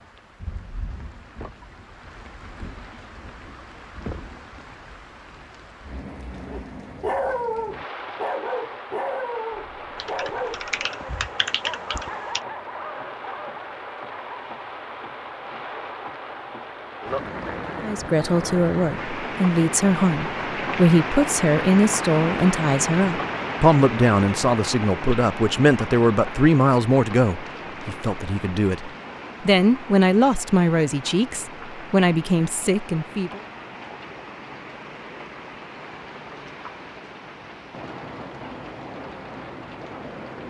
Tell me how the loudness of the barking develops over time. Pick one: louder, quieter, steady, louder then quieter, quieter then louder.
quieter.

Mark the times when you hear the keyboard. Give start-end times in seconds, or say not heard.
10.0-12.4.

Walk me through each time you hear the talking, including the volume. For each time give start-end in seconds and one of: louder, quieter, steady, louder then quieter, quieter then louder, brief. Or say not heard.
17.8-33.4 steady.